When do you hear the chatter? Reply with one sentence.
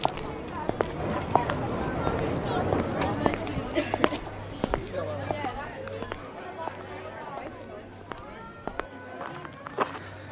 The chatter can be heard from 0.0 to 10.2 s.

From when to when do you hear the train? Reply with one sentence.
The train can be heard from 0.0 to 3.4 s.